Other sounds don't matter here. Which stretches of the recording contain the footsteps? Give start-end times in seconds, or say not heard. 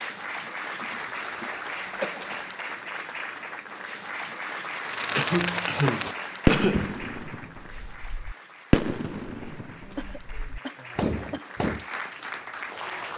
not heard.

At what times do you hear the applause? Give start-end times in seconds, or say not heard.
0.0-13.1.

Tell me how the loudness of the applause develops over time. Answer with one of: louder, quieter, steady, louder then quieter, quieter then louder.
quieter then louder.